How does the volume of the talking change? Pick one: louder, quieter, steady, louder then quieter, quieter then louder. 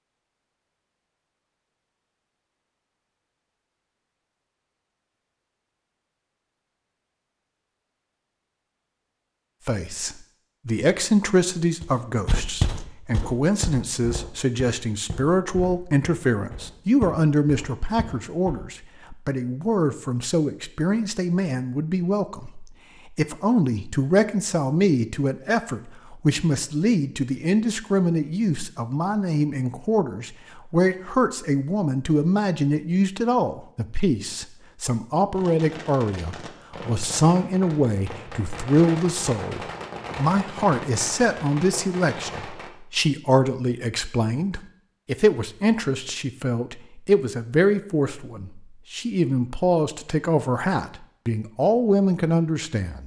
steady.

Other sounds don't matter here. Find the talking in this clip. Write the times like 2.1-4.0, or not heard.
9.7-53.0.